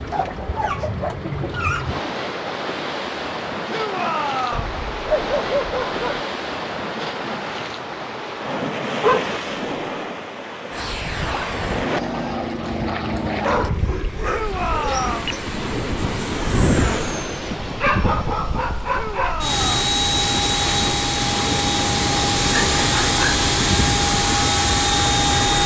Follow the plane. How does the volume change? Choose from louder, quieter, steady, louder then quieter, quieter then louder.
louder.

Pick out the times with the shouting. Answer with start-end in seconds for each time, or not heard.
3.6-4.8, 14.2-15.3, 18.9-19.8.